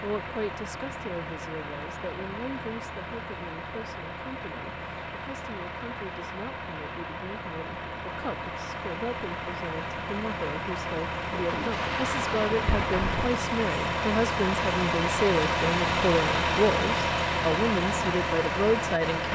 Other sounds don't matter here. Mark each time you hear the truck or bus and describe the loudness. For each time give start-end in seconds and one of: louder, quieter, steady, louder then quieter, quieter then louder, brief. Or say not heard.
0.0-19.2 louder.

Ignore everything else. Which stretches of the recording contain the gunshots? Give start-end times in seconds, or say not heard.
11.3-13.3.